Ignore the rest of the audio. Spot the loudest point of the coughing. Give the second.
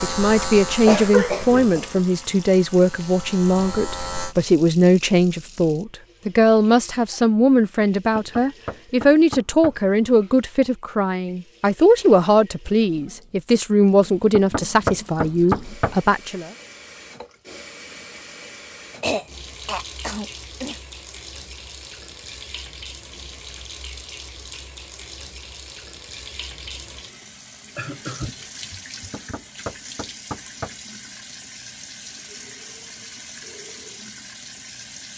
1 s.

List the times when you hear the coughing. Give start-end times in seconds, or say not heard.
0.8-2.0, 19.0-20.8, 27.8-29.4.